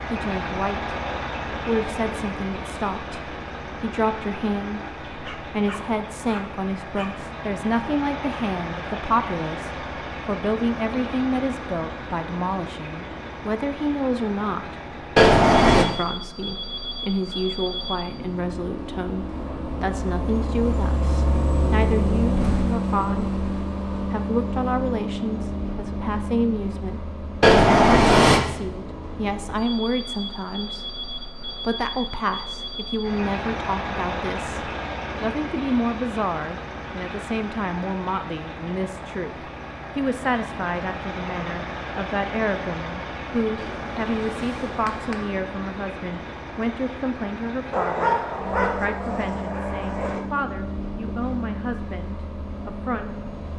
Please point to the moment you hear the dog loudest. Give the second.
48 s.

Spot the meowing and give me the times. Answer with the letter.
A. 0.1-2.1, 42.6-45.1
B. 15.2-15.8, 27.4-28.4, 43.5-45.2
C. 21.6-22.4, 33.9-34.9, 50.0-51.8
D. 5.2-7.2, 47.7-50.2
B.